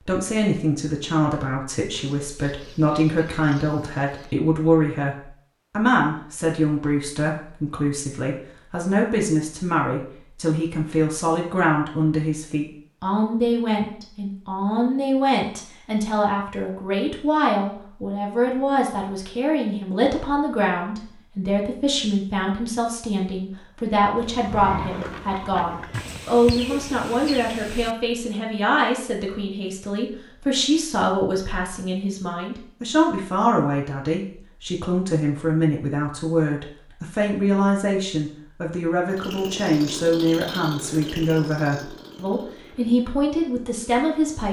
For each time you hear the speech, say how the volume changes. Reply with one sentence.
The speech can be heard from 0.1 to 44.4 s, at a steady volume.